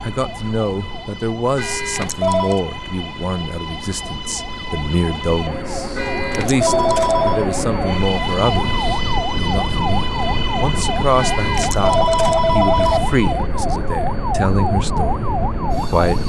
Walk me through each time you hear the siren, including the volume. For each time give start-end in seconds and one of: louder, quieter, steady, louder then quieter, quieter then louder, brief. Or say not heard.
0.0-16.2 louder.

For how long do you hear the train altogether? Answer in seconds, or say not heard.
16 s.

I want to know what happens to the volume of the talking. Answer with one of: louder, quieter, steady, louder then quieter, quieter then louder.
steady.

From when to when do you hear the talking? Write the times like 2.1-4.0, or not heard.
0.0-16.2.